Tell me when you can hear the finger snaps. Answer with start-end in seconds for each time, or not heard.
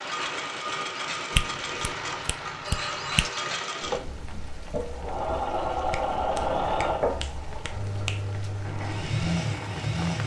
1.3-3.3, 5.9-8.3.